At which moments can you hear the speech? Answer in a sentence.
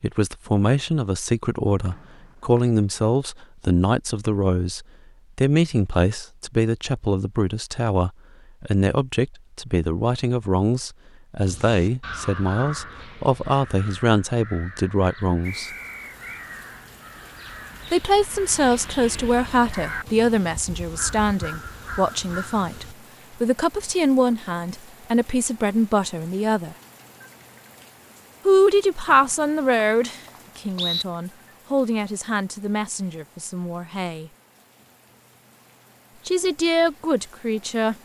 The speech can be heard from 0.0 to 15.7 s, from 17.9 to 26.8 s, from 28.4 to 34.3 s and from 36.2 to 38.0 s.